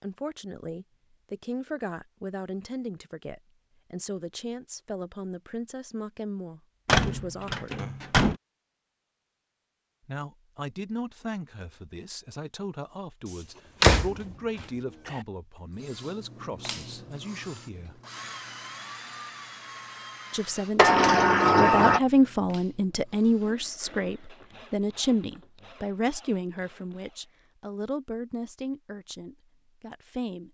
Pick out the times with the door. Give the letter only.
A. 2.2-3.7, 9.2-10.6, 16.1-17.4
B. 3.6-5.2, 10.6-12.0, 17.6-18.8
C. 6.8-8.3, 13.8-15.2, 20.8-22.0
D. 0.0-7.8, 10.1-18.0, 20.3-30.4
C.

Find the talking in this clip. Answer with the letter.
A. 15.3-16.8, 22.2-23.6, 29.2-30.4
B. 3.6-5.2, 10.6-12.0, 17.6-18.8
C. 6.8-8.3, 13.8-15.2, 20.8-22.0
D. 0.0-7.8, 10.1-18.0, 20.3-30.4
D.